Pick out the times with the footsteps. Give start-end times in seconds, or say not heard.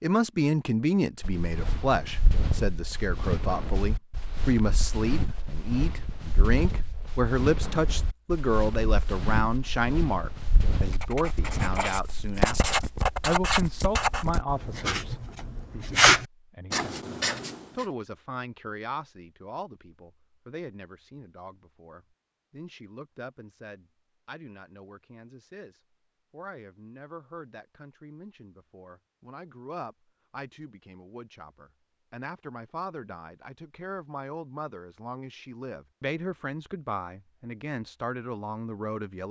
1.2-11.8.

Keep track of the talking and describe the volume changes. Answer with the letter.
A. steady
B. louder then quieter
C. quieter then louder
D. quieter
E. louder
C.